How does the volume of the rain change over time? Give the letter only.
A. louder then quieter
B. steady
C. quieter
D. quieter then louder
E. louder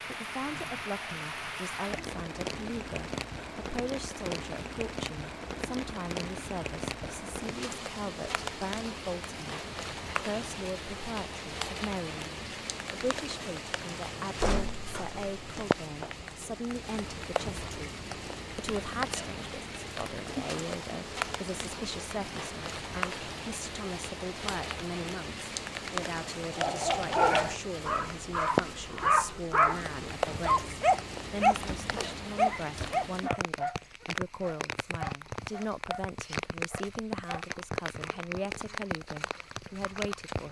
B.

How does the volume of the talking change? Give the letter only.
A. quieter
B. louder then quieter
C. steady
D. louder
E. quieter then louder
C.